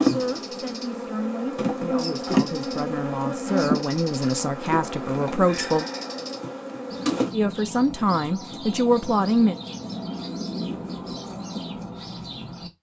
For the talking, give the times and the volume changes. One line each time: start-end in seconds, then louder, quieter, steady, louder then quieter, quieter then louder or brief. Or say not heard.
0.0-5.8 louder
7.3-9.6 brief.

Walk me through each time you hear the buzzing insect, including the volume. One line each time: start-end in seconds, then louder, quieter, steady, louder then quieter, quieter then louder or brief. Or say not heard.
0.0-7.3 louder then quieter.